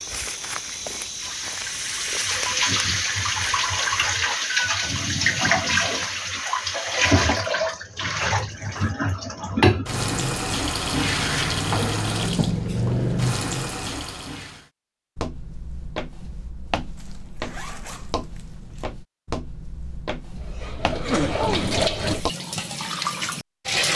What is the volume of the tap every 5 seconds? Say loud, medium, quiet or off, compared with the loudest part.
loud, loud, loud, off, loud.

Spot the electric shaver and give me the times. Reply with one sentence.
You can't hear the electric shaver here.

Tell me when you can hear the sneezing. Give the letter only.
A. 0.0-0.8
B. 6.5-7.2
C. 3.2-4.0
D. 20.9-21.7
D.